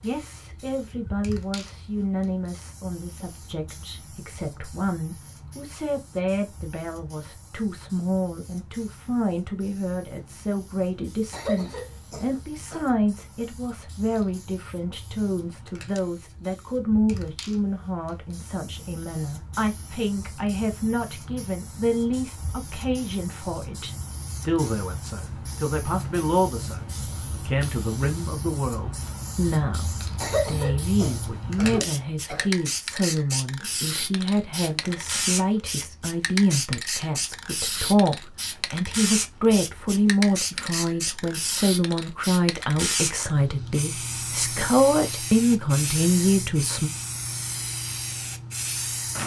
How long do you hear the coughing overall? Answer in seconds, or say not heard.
4 s.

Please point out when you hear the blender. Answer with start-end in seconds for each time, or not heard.
not heard.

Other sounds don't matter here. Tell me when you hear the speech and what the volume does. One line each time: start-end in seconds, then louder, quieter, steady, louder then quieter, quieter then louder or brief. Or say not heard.
0.0-46.9 louder.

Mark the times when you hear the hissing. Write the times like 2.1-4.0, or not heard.
0.0-49.2.